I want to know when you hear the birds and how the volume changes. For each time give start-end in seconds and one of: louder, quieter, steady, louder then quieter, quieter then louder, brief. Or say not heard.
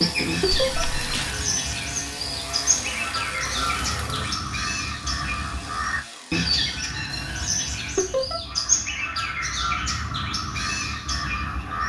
0.0-11.8 steady.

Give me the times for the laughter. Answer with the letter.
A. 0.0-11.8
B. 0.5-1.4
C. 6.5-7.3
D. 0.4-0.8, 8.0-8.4
D.